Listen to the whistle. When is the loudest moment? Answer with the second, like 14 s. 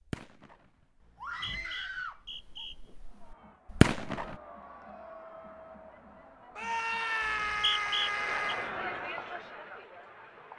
8 s.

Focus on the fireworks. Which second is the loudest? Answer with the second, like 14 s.
4 s.